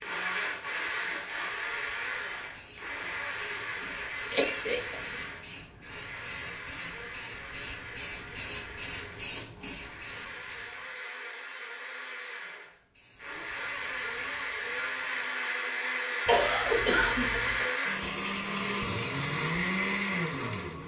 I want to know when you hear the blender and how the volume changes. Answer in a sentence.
You can hear the blender from 0.0 to 20.8 s, getting quieter then louder.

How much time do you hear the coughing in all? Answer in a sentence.
You can hear the coughing for 2 seconds altogether.